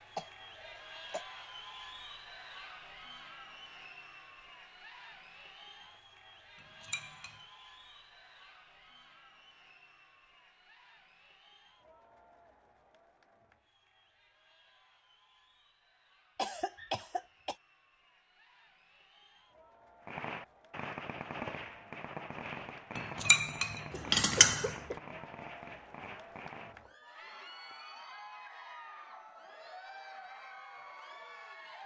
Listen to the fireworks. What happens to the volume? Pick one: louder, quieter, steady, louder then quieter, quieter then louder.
quieter.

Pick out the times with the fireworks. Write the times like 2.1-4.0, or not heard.
20.1-27.8.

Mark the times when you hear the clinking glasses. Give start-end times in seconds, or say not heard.
6.5-7.4, 22.9-24.8.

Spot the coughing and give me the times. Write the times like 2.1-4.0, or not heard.
0.1-1.2, 16.4-17.6, 23.9-25.0.